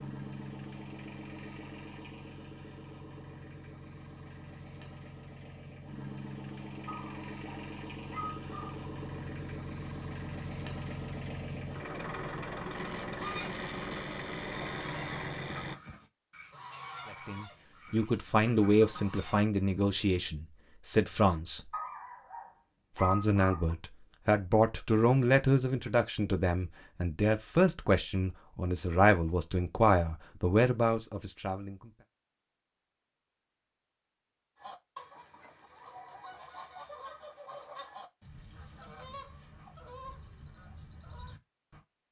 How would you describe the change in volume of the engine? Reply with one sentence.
The volume of the engine goes up.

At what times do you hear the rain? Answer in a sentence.
The rain can't be heard in this clip.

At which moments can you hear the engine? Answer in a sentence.
The engine can be heard from 0.0 to 15.8 s.